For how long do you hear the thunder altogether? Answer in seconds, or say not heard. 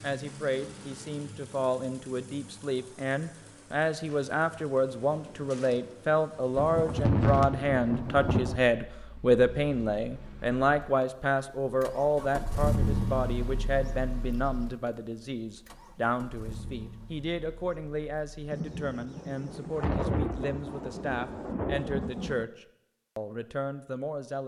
6 s.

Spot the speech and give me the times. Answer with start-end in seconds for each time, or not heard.
0.0-24.4.